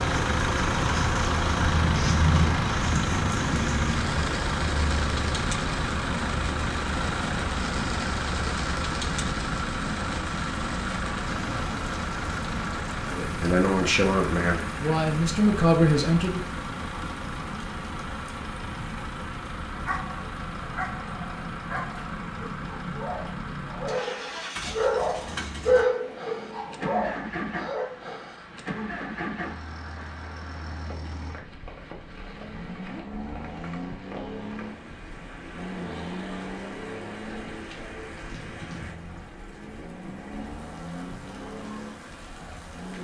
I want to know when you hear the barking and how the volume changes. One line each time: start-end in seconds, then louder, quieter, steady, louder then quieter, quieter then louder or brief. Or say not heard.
19.7-27.9 louder then quieter.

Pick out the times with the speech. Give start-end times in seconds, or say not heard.
13.1-16.4.